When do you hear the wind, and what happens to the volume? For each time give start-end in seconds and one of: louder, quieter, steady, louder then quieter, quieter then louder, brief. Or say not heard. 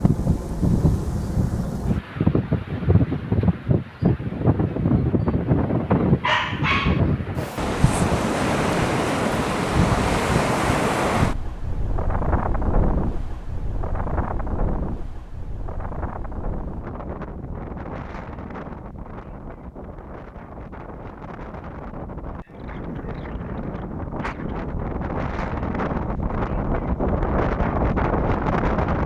0.0-29.0 quieter then louder.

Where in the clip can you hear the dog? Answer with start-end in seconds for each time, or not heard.
6.2-7.0.